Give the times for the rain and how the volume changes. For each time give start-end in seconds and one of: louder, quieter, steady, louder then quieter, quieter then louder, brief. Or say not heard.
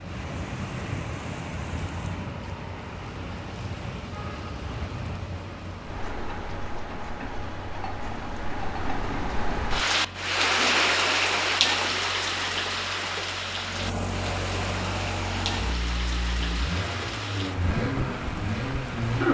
0.0-19.2 louder then quieter.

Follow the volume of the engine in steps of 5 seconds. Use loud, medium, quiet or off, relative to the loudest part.
quiet, quiet, medium, loud.